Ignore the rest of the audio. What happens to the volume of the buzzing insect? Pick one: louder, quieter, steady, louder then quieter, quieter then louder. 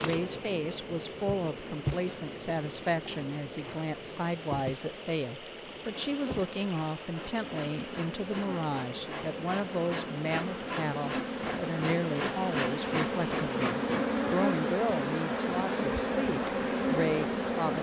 louder.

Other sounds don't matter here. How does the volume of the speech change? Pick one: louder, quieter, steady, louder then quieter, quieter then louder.
steady.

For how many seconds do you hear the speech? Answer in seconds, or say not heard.
18 s.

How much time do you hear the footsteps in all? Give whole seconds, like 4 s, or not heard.
not heard.